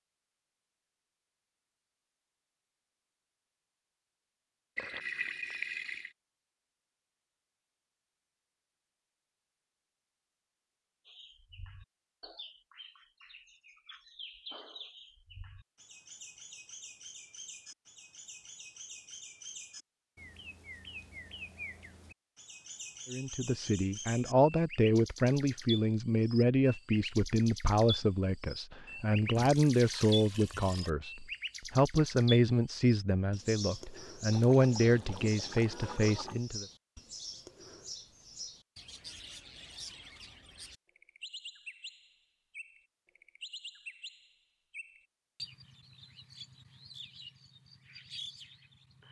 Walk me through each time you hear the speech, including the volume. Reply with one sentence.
You can hear the speech from 23.1 to 36.6 s, at a steady volume.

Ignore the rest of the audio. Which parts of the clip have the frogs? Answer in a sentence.
The frogs can't be heard in this clip.